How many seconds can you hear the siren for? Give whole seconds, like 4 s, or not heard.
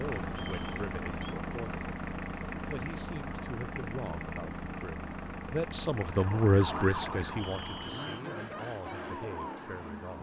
4 s.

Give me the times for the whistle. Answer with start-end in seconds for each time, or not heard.
0.3-1.4, 7.4-8.2.